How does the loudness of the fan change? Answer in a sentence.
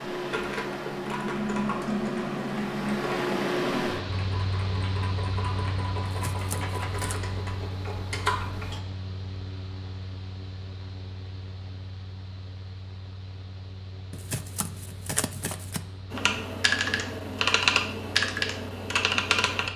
The loudness of the fan goes down.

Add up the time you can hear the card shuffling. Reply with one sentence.
You can hear the card shuffling for 3 seconds altogether.